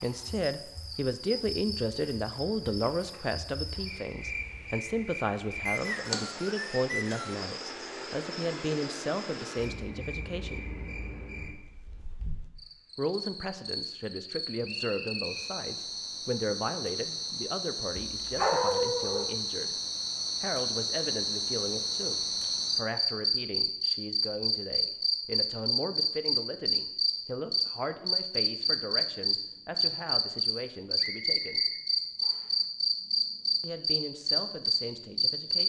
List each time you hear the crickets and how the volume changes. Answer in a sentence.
The crickets can be heard from 0.0 to 35.6 s, getting louder.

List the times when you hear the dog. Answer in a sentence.
You can hear the dog from 18.1 to 19.4 s.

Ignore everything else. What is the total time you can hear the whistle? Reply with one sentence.
You can hear the whistle for 4 seconds altogether.